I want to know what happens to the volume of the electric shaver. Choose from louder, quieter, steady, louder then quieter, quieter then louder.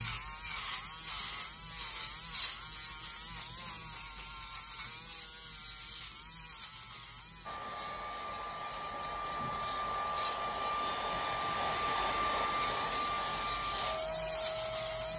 quieter then louder.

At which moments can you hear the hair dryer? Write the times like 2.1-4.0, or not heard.
7.5-15.1.